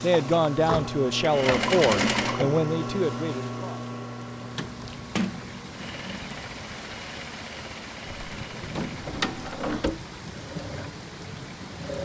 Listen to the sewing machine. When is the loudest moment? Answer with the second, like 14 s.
2 s.